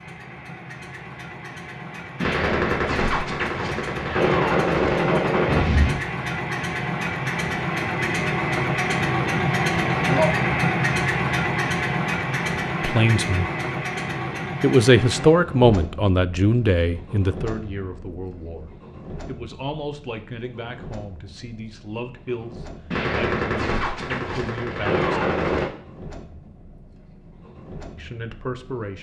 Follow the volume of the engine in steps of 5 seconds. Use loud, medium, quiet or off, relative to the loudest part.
medium, loud, loud, quiet, quiet, quiet.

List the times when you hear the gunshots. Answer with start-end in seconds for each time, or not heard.
2.2-6.0, 22.9-25.7.